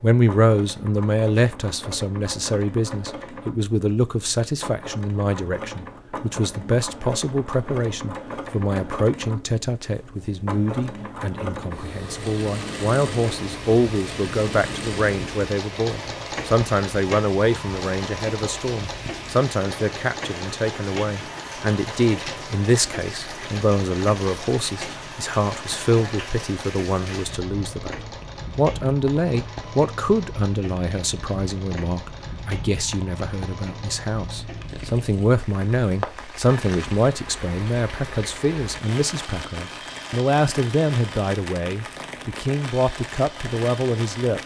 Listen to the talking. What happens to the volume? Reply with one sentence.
The volume of the talking stays about the same.